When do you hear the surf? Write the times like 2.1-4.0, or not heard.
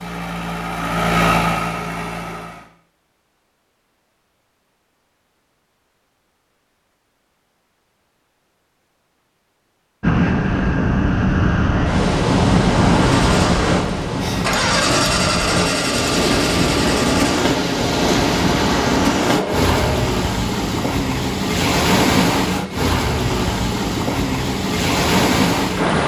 10.0-26.0.